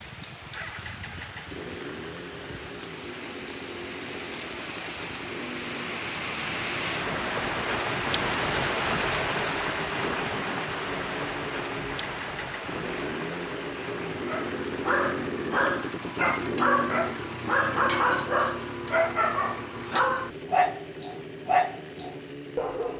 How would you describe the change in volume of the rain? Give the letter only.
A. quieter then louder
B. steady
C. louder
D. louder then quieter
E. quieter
D.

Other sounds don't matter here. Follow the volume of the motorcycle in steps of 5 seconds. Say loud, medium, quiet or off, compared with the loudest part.
medium, medium, loud, loud, medium.